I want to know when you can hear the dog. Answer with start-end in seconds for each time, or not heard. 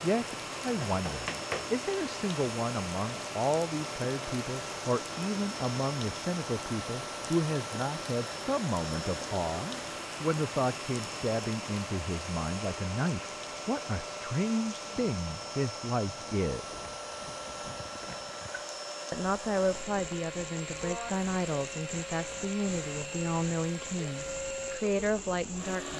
not heard.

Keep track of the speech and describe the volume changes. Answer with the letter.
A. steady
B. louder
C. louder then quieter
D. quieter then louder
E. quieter
A.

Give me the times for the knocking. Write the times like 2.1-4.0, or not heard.
0.8-1.8.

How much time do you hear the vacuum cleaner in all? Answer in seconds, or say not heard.
26 s.